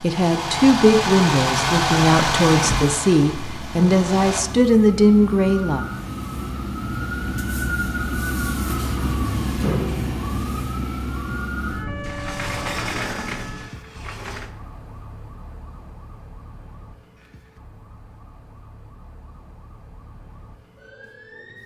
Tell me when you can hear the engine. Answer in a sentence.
The engine can be heard from 0.0 to 4.4 s.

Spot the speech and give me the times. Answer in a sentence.
The speech can be heard from 0.0 to 5.8 s.